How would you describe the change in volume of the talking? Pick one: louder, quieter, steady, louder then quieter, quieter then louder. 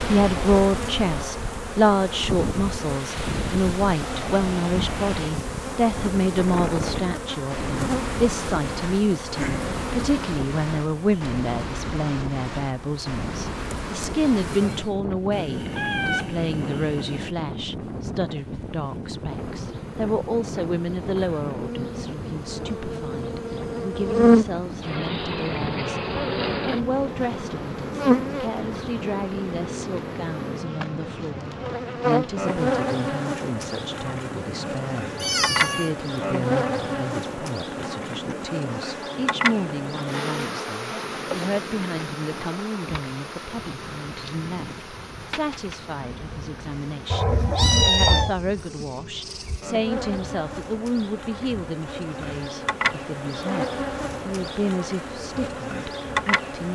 quieter.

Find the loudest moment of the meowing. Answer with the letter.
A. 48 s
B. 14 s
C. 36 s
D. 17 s
A.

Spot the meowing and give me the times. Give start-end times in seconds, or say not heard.
15.3-17.4, 35.1-35.9, 47.1-48.4.